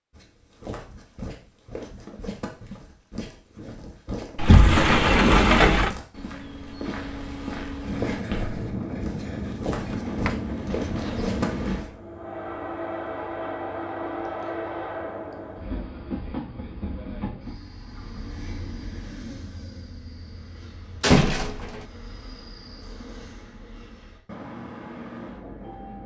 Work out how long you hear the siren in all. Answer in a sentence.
The siren can't be heard in this clip.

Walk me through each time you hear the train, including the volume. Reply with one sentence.
The train can be heard from 7.8 to 26.0 s, getting quieter.